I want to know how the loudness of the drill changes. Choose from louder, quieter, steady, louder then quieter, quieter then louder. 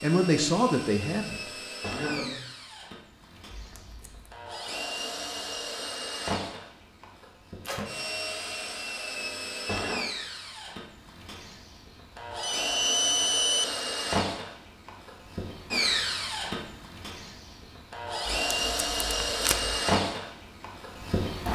louder.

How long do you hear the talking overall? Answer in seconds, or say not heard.
2 s.